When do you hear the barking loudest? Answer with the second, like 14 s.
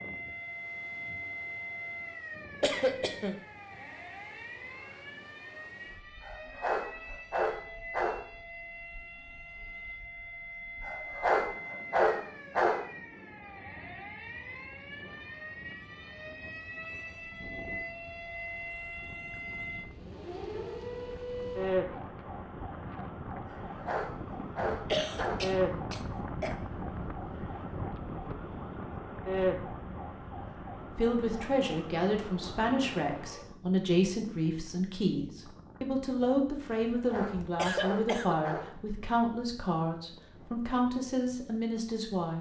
12 s.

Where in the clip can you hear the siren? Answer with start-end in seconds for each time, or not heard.
0.0-33.5.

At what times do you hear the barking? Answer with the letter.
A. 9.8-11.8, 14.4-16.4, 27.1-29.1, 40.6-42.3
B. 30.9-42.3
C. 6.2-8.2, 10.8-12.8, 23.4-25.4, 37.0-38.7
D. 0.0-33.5
C.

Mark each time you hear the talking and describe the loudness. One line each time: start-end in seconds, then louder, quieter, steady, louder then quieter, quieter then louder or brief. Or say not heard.
30.9-42.3 steady.